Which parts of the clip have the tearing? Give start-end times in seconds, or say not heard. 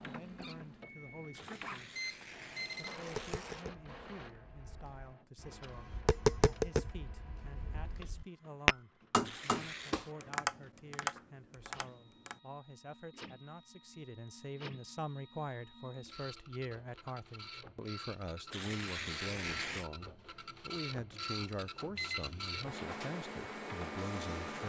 1.3-3.6, 9.2-9.9, 18.5-19.9.